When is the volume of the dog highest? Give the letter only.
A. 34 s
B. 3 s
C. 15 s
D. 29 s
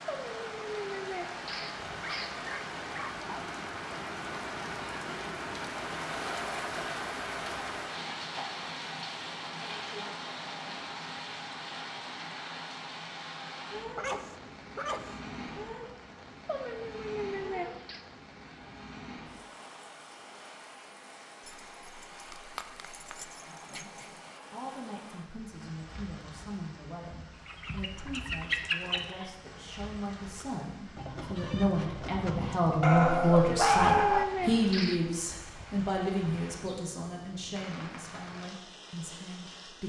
A.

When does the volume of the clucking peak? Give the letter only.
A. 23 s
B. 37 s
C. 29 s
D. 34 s
C.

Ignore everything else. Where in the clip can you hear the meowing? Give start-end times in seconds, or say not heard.
0.1-2.4, 16.4-18.0, 33.3-35.2.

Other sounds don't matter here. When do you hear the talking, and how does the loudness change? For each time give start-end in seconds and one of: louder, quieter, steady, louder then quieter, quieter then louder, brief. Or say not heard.
23.7-39.8 louder then quieter.